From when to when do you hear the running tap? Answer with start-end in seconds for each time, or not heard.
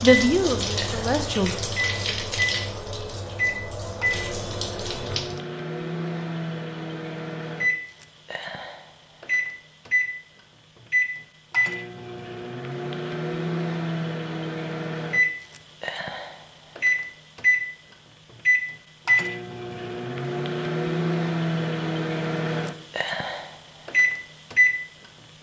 0.0-5.4.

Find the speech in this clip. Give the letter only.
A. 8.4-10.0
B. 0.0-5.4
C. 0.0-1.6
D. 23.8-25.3
C.